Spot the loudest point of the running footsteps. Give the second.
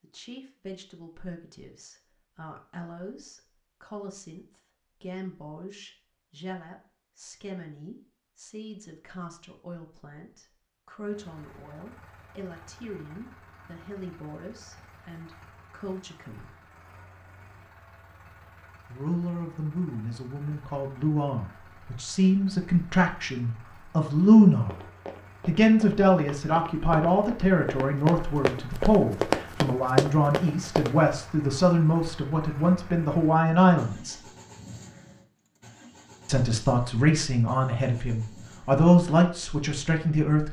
30 s.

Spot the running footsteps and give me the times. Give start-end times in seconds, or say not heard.
24.6-30.9.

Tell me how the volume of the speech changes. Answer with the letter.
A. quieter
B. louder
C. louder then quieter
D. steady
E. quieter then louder
B.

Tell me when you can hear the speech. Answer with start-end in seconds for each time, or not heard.
0.0-16.4, 18.9-24.8, 25.4-34.1, 36.2-40.4.